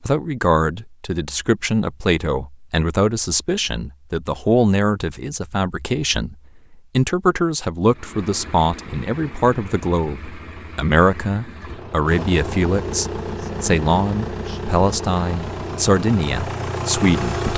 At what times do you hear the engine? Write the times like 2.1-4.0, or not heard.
7.9-17.5.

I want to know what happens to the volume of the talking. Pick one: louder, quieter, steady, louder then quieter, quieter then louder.
steady.